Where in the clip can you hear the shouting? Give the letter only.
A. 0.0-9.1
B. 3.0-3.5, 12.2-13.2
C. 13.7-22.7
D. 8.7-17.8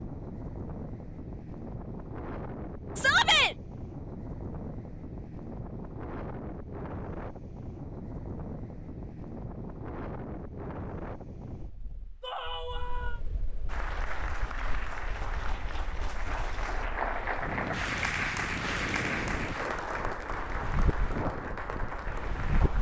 B.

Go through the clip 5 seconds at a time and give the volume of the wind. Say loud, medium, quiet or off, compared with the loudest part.
loud, loud, medium, loud, loud.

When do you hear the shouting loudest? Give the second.
3 s.